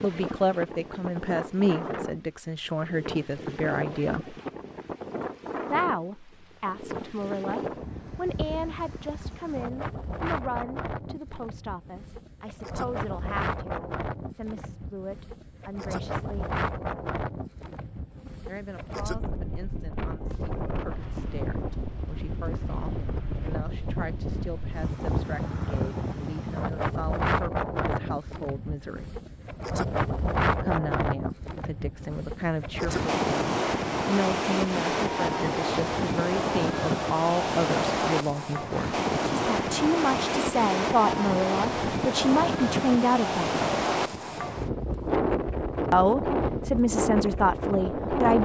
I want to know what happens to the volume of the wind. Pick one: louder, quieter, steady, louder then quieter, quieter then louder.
louder.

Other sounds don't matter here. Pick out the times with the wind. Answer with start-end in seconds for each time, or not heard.
0.0-48.4.